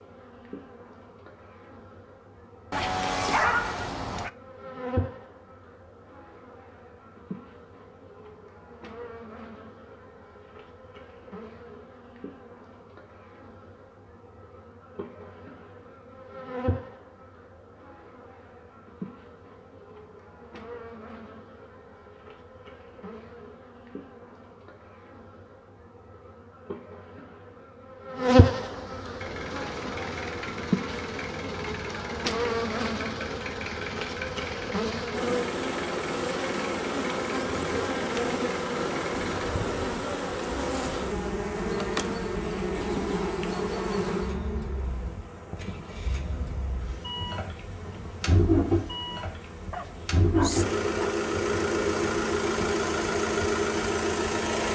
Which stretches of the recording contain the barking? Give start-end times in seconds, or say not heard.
2.7-4.3, 49.7-51.2.